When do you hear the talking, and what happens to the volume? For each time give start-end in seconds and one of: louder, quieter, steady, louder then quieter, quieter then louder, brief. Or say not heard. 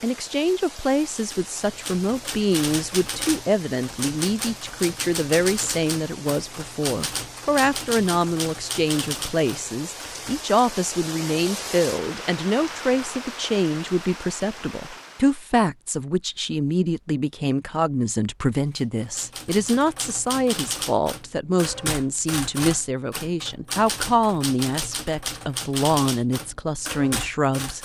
0.0-27.8 steady.